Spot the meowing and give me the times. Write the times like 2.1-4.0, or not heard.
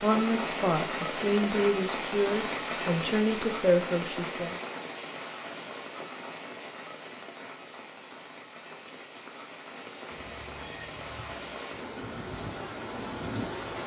10.1-11.5.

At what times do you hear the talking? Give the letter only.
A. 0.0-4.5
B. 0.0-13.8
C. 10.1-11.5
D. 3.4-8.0
A.